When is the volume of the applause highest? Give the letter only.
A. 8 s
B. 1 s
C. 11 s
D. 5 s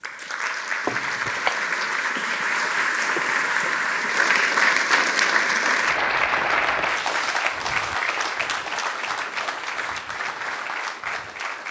D.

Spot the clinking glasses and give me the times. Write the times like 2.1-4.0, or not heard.
0.8-1.6.